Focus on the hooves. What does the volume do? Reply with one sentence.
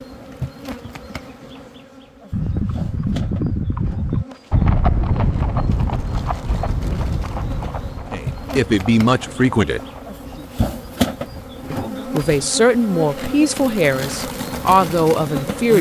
The volume of the hooves goes down.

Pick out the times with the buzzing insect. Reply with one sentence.
You can hear the buzzing insect from 0.0 to 15.7 s.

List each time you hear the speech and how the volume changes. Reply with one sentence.
The speech can be heard briefly from 8.1 to 9.8 s; and from 11.7 to 15.7 s, getting quieter then louder.